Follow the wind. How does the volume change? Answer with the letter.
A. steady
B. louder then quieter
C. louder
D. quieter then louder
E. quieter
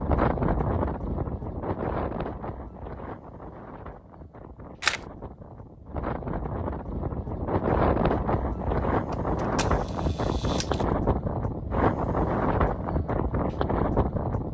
D.